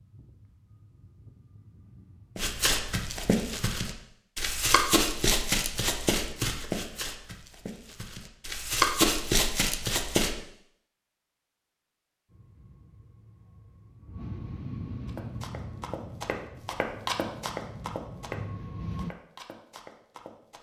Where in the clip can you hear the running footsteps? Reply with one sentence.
The running footsteps can be heard from 2.4 to 10.3 s and from 15.1 to 20.5 s.